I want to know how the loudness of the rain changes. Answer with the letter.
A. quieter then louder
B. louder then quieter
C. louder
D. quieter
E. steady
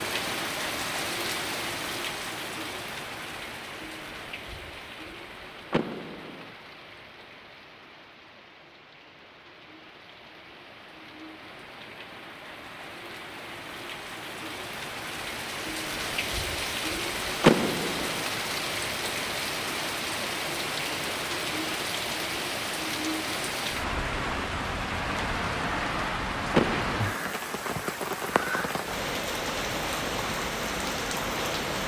A.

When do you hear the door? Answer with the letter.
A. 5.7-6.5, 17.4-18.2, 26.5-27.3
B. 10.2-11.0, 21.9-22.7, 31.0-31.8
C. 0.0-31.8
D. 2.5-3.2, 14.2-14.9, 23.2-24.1
A.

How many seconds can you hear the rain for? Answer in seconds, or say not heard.
32 s.